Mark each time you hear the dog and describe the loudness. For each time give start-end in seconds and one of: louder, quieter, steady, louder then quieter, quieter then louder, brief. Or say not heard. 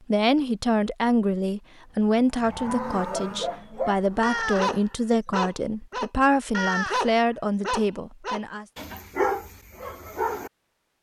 3.1-10.5 steady.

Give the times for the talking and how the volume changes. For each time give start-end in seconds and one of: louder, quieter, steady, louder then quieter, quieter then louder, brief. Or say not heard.
0.1-8.7 steady.